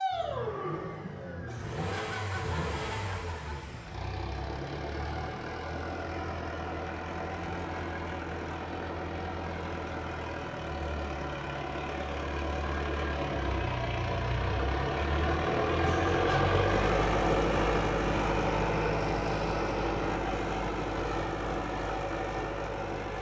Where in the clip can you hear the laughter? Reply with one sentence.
You can hear the laughter from 1.4 to 3.5 s and from 15.8 to 16.2 s.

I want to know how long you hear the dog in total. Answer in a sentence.
You can't hear the dog here.